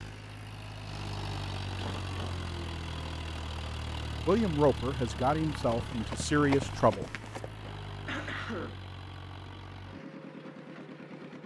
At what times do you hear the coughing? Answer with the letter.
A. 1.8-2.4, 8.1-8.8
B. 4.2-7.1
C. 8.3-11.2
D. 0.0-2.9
A.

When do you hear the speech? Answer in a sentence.
The speech can be heard from 4.2 to 7.1 s.